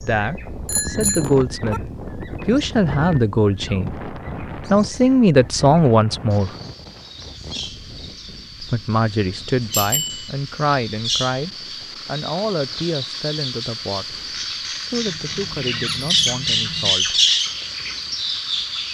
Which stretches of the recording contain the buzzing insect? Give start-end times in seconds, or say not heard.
not heard.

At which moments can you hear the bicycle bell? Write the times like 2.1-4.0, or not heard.
0.7-1.8, 9.7-10.3, 14.9-16.9.